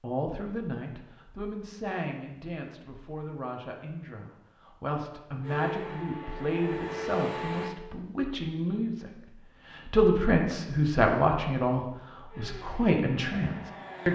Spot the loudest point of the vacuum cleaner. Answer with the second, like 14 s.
7 s.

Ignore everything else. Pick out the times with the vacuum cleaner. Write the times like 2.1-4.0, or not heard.
5.4-7.8, 12.2-14.1.